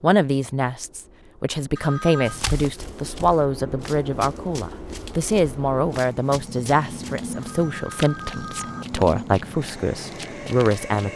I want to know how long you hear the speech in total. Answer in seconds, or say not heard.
11 s.